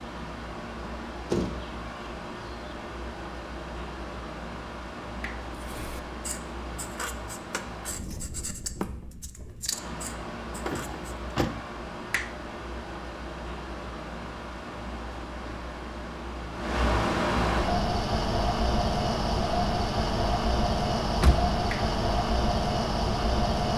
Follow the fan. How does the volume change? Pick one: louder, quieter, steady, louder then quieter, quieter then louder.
louder.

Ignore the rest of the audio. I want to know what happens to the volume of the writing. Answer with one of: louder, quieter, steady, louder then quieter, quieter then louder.
louder then quieter.